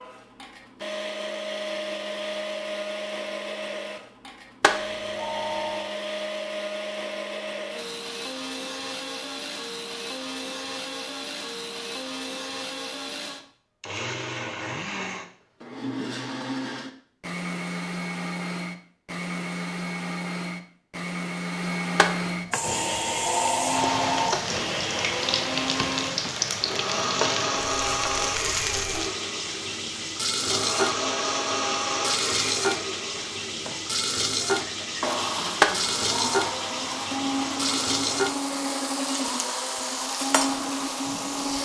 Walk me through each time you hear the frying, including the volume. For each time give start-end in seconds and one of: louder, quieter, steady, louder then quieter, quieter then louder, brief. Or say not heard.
22.5-41.6 steady.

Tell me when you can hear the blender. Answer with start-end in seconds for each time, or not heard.
0.0-41.6.